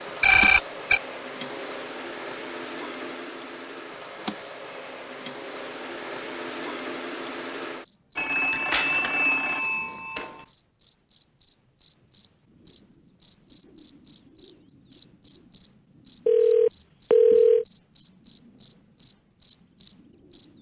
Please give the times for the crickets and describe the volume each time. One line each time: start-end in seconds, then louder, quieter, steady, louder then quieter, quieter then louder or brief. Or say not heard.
0.0-20.4 louder.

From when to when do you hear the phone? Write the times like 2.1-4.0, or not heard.
0.2-1.0, 8.2-10.4, 16.2-17.6.